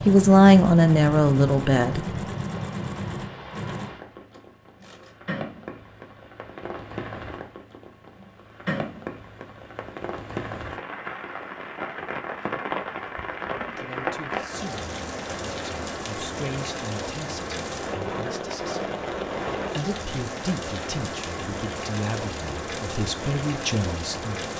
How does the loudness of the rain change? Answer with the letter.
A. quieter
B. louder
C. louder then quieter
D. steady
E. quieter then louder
B.